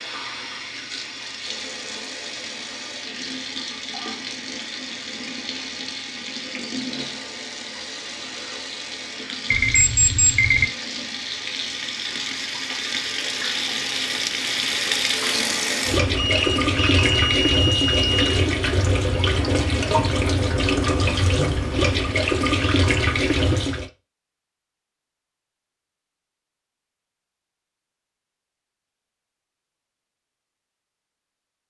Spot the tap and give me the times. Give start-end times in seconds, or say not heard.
0.0-23.9.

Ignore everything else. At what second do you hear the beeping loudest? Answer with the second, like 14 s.
10 s.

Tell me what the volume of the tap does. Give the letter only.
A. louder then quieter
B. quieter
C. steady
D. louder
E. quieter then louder
D.